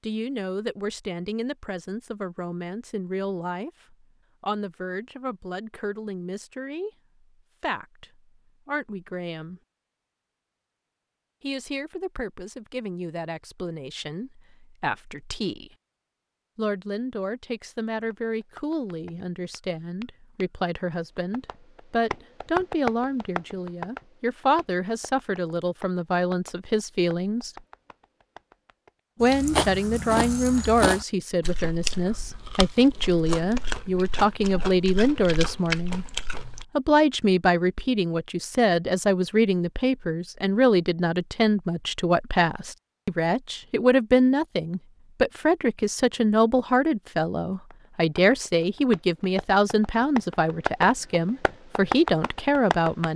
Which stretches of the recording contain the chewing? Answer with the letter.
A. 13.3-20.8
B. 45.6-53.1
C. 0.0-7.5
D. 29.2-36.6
D.